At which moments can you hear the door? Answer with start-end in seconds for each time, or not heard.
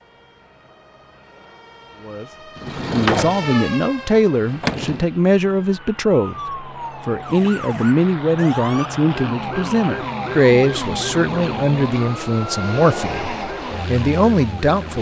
2.5-5.0.